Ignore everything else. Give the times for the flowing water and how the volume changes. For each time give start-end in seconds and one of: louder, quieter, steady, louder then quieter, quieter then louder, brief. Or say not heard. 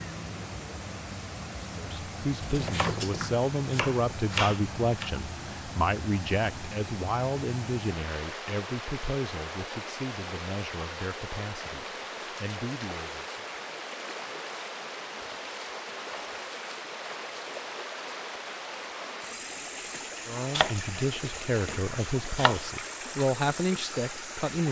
0.0-24.6 steady.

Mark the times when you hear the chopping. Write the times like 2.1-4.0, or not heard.
2.4-5.1, 20.6-22.6.